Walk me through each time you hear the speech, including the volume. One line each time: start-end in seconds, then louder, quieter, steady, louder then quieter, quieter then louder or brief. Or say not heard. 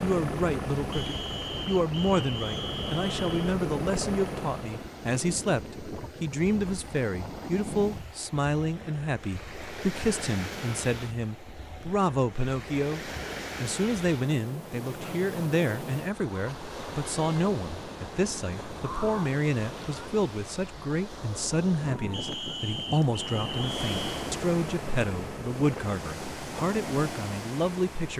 0.0-28.1 steady.